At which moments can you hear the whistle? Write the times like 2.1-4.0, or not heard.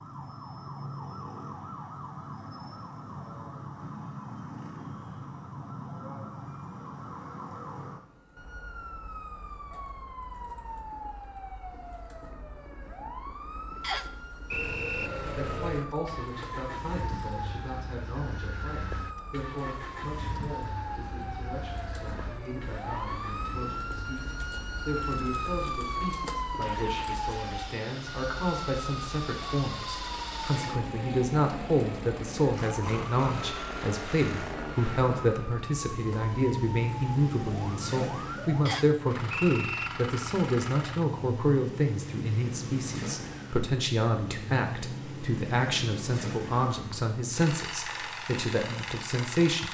13.8-15.1, 38.6-39.9.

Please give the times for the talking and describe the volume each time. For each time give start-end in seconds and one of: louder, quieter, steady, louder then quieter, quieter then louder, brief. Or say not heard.
15.3-49.7 louder.